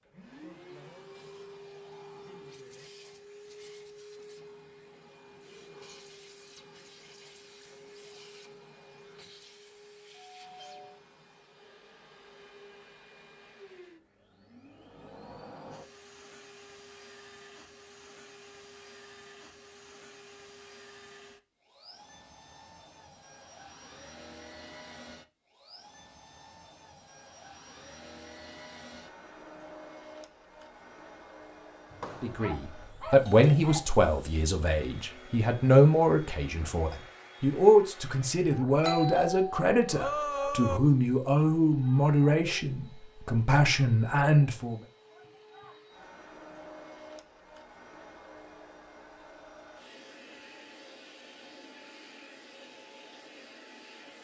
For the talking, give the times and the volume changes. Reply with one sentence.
You can hear the talking from 32.2 to 44.8 s, at a steady volume.